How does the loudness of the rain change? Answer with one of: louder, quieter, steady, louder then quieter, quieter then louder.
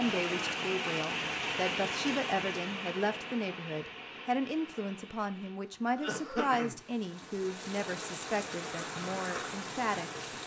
quieter then louder.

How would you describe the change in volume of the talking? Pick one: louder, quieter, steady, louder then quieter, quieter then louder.
steady.